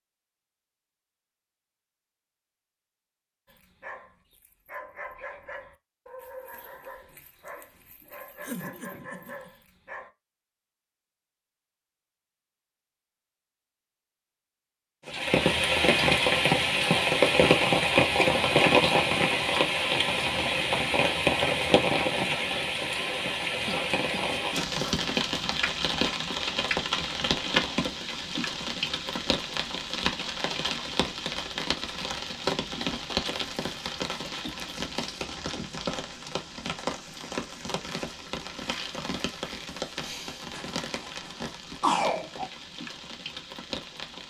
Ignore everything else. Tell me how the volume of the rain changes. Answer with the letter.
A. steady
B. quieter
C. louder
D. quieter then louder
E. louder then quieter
B.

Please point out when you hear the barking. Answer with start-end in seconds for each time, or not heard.
3.5-10.1.